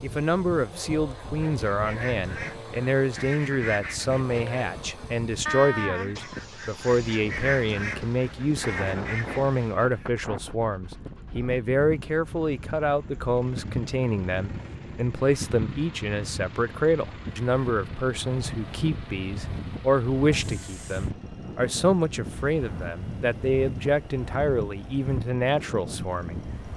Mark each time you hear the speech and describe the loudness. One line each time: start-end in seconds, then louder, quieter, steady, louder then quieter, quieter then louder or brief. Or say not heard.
0.0-26.7 steady.